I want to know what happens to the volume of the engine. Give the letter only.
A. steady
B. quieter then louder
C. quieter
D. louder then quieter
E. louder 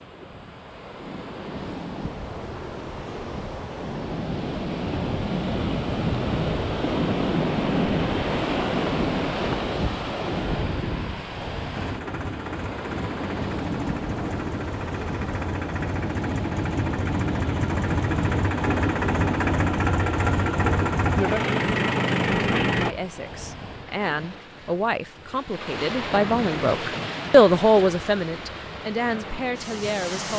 E.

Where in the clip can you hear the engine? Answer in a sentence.
You can hear the engine from 11.8 to 22.9 s.